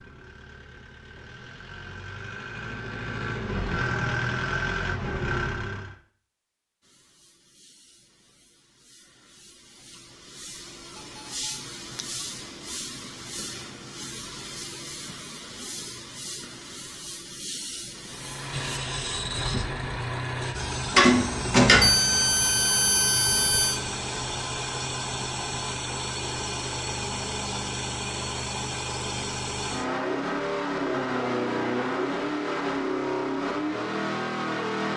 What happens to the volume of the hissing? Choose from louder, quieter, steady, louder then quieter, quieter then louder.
louder.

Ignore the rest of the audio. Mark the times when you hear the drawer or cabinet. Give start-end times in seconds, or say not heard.
20.9-21.9.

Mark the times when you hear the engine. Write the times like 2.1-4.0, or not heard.
0.0-6.0, 18.1-34.9.